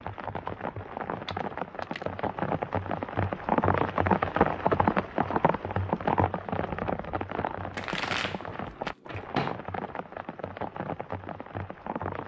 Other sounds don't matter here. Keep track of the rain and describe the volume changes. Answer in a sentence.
The loudness of the rain goes up, then down.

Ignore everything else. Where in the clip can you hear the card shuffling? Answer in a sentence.
The card shuffling can be heard from 1.2 to 2.0 s and from 7.7 to 9.6 s.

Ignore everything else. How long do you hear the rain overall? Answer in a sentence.
The rain can be heard for 12 seconds in total.